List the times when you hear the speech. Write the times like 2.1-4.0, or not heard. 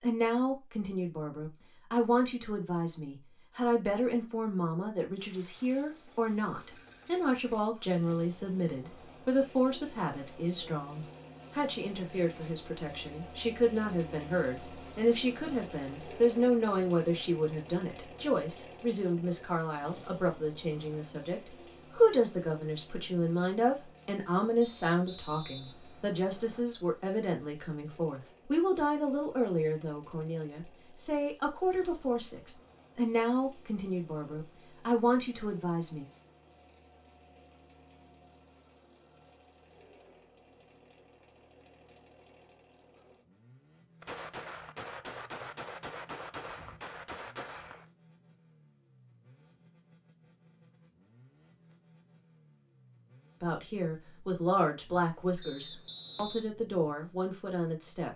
0.0-36.0, 53.4-58.1.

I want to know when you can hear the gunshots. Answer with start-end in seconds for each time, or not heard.
44.0-47.9.